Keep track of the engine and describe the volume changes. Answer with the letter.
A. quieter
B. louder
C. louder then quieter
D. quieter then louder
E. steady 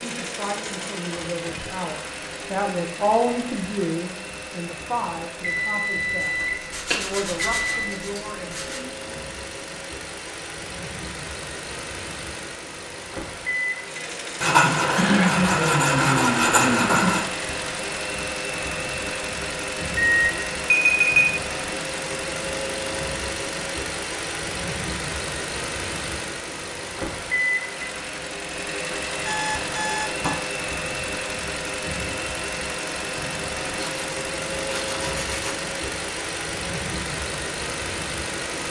B.